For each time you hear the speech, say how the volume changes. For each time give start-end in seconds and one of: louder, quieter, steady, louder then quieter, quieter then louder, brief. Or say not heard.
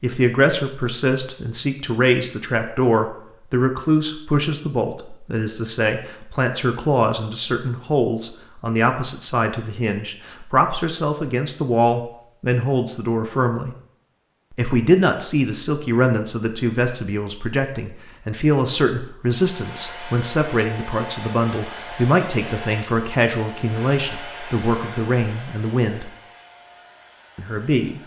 0.0-13.8 steady
14.6-26.1 steady
27.4-28.0 brief.